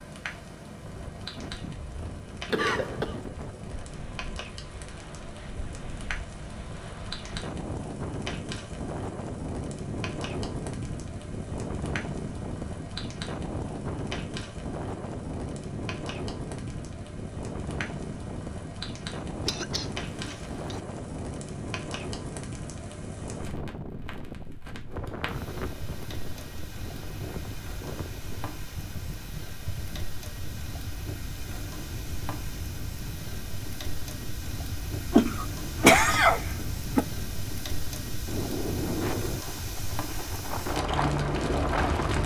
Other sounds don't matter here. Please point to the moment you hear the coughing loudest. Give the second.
36 s.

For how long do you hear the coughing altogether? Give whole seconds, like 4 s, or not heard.
4 s.